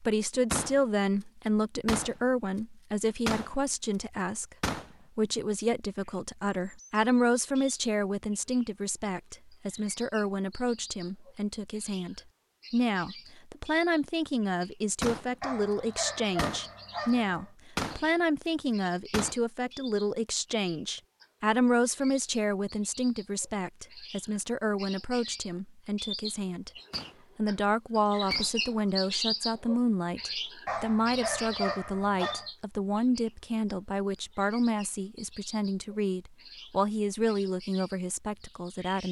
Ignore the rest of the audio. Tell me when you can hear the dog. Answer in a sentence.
The dog can be heard from 15.4 to 17.5 s and from 30.6 to 32.5 s.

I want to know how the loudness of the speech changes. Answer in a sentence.
The volume of the speech stays about the same.